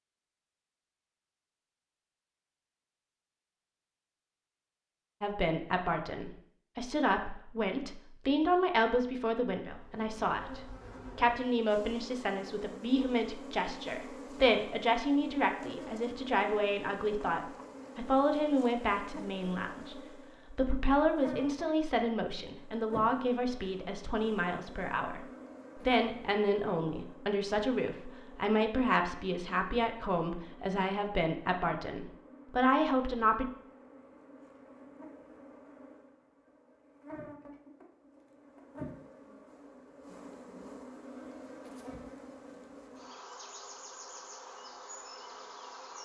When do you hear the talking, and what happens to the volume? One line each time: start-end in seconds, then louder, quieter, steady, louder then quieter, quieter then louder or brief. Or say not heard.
5.2-33.5 steady.